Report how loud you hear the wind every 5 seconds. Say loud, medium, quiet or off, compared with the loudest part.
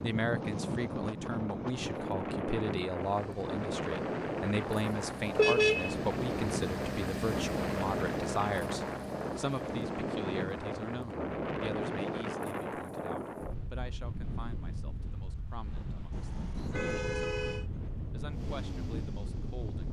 loud, loud, loud, medium.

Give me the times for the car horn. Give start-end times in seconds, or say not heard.
5.3-6.0, 16.1-17.6.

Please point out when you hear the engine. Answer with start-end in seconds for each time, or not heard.
3.0-12.3, 18.2-19.8.